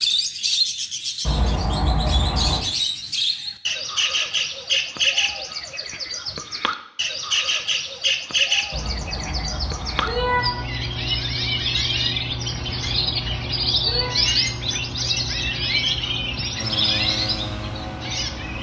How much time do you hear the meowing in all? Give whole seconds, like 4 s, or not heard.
5 s.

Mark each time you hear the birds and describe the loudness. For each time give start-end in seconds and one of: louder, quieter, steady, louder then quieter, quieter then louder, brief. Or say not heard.
0.0-18.5 steady.